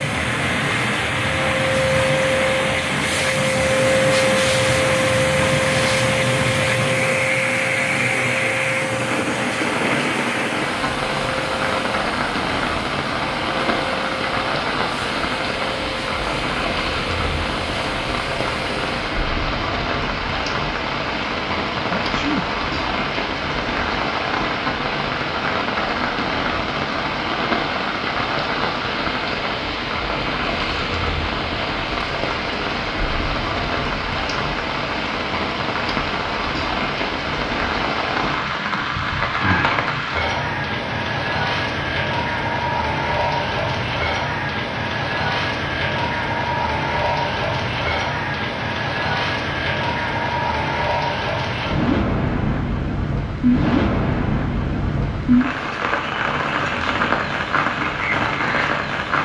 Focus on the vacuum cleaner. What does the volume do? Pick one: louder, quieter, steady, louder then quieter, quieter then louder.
quieter.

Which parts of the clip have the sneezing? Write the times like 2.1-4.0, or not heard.
21.9-22.4.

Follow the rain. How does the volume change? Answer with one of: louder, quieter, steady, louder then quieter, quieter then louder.
steady.